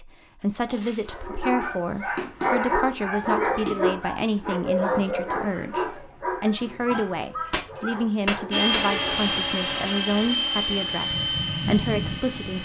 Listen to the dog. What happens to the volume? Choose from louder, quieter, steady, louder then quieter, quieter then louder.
quieter.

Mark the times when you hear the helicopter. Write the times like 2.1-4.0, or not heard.
8.5-12.6.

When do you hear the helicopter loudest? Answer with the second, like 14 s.
9 s.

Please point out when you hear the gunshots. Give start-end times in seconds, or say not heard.
7.5-8.8.